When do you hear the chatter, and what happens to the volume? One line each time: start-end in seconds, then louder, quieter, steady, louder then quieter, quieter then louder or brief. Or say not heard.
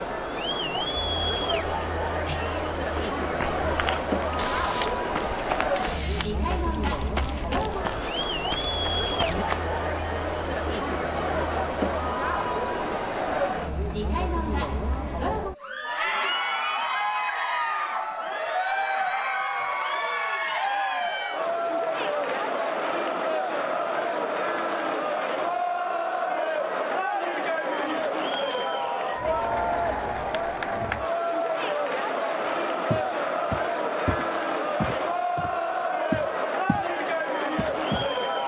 0.0-38.4 steady.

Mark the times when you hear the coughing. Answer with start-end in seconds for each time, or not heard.
1.4-2.8.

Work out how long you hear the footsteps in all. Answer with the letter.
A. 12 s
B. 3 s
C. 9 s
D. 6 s
A.